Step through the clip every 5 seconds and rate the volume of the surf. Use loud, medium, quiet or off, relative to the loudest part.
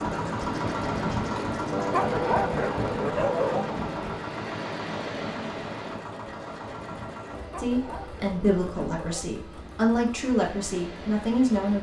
loud, medium, medium.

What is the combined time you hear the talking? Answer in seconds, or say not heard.
4 s.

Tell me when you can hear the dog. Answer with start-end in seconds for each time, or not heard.
1.7-3.8, 7.3-9.3.